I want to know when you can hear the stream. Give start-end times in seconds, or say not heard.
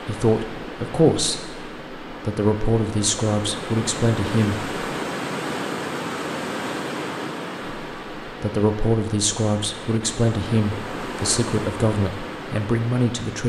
0.0-13.4.